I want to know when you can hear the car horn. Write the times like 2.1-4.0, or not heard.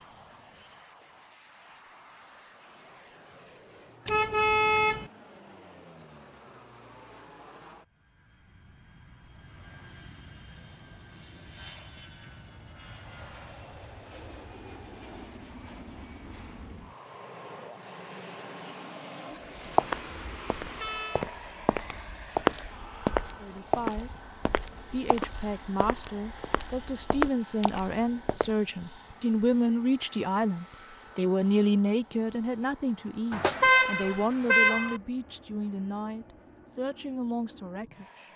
4.0-5.1, 19.7-21.2, 33.3-35.0.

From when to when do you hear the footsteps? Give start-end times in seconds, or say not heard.
19.6-28.6.